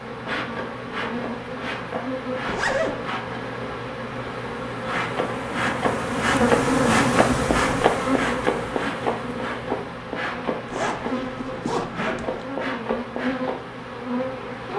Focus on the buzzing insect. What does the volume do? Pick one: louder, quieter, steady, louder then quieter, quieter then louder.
louder then quieter.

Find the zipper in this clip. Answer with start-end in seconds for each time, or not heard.
2.5-3.0, 6.5-7.9, 10.7-12.4.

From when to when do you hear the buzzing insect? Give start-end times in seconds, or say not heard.
0.0-14.7.